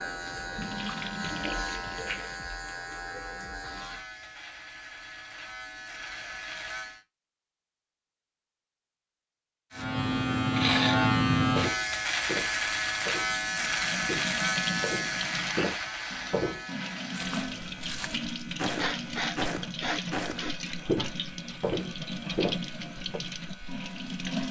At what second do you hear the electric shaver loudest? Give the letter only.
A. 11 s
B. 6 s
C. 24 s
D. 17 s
A.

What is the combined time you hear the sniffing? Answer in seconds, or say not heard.
2 s.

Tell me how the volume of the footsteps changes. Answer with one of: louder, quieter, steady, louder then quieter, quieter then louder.
louder.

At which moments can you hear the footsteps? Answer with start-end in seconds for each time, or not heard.
11.6-23.2.